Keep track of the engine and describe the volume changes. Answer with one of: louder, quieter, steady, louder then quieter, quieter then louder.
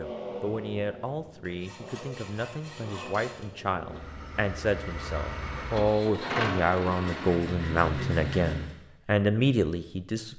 louder.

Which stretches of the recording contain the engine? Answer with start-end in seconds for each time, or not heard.
0.0-8.7.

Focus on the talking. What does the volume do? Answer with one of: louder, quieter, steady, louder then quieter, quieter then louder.
louder.